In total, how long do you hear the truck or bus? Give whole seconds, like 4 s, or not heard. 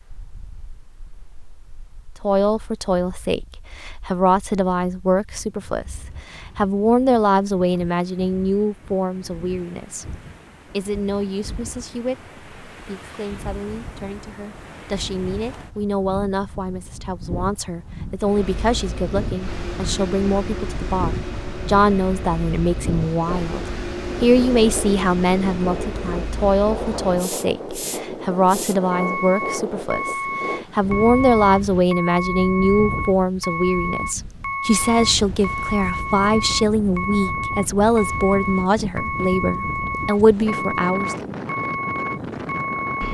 25 s.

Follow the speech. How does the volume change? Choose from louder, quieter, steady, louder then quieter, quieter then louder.
quieter then louder.